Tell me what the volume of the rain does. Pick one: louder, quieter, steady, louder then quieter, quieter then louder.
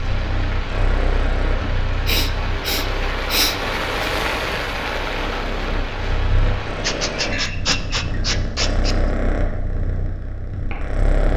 louder then quieter.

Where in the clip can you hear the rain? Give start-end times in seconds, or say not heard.
0.0-7.3.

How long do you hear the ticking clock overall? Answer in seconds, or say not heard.
not heard.